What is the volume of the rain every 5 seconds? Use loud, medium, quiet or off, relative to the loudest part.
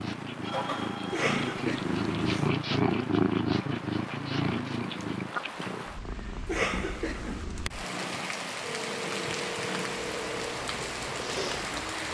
medium, loud, loud.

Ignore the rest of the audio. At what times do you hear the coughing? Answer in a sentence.
You can hear the coughing from 1.1 to 2.5 s and from 6.5 to 7.5 s.